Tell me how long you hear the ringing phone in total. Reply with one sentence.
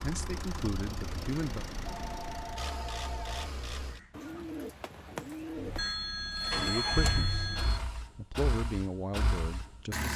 The ringing phone can be heard for 4 seconds in total.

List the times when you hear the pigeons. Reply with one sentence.
You can hear the pigeons from 4.1 to 6.0 s.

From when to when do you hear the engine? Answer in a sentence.
The engine can be heard from 0.0 to 4.2 s and from 5.5 to 10.1 s.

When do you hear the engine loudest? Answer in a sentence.
The loudest moment of the engine is at 7 seconds.